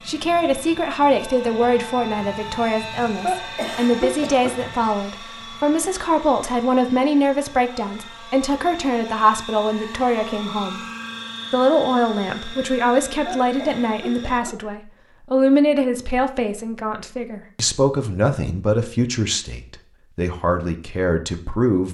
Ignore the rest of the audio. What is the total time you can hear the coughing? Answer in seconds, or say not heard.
3 s.